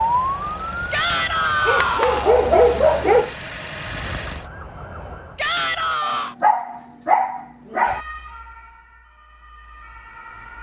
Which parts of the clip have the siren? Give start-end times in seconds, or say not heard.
0.0-2.0, 4.0-6.0, 7.8-10.5.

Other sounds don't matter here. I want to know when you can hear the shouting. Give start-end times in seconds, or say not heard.
0.9-2.4, 5.3-6.3.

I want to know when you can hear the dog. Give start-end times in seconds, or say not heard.
1.6-3.3, 6.0-8.0.